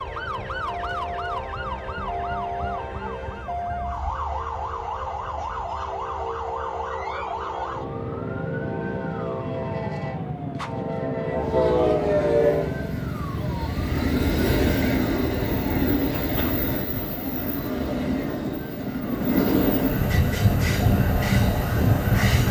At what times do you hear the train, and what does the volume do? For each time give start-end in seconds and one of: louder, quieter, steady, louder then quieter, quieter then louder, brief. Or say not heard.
0.0-22.4 louder.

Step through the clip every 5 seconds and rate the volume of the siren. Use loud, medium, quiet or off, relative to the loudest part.
loud, loud, loud, medium, loud.